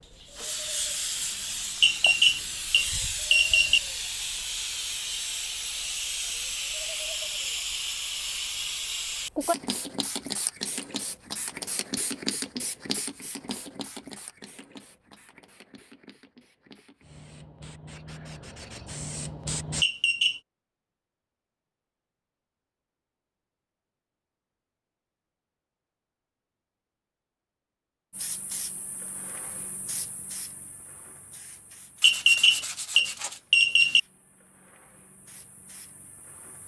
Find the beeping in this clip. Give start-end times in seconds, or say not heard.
1.8-3.8, 19.8-20.4, 32.0-34.0.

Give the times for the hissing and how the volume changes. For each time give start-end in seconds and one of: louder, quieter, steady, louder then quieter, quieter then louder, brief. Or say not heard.
0.0-19.9 quieter
28.1-36.6 quieter then louder.